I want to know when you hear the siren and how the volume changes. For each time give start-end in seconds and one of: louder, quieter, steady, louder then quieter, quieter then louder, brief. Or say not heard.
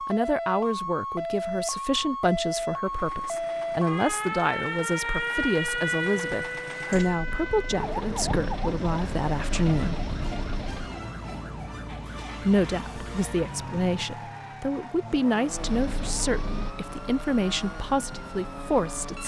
0.0-19.2 quieter.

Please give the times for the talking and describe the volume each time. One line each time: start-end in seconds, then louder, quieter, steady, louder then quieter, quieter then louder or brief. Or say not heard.
0.1-9.9 steady
12.4-19.2 steady.